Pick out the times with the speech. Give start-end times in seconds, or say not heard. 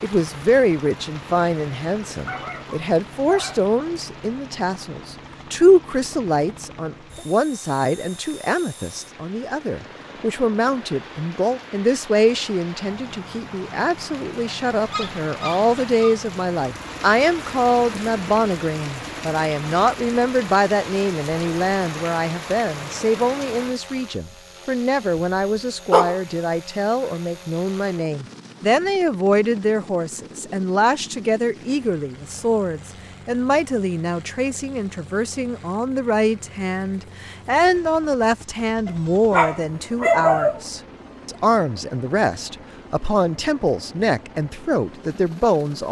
0.0-45.8.